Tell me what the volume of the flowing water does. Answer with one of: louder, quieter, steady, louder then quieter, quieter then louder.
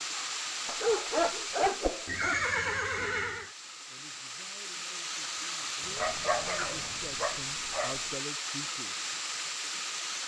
quieter then louder.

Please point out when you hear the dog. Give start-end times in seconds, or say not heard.
0.7-2.4, 6.0-8.1.